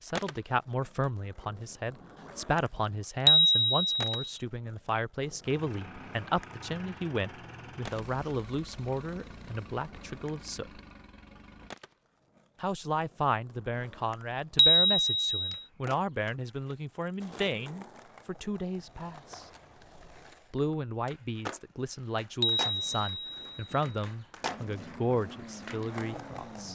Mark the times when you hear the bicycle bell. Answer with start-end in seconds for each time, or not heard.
3.2-4.3, 14.6-15.6, 22.4-23.9.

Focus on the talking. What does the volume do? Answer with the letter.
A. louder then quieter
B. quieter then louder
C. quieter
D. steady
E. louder
D.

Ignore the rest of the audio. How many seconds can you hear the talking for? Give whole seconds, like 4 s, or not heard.
24 s.